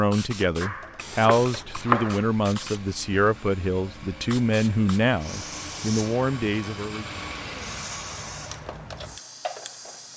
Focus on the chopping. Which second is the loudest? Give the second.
2 s.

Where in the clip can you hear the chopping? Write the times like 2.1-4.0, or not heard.
0.6-2.2.